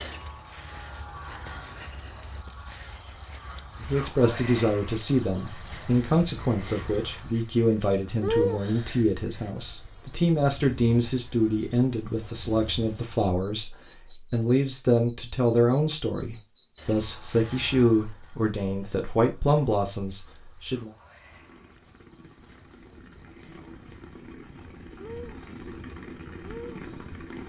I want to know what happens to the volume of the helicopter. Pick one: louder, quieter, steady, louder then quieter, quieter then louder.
louder.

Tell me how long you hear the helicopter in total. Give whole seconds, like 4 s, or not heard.
6 s.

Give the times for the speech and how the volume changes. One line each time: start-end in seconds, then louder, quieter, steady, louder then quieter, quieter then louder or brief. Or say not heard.
3.8-20.9 steady.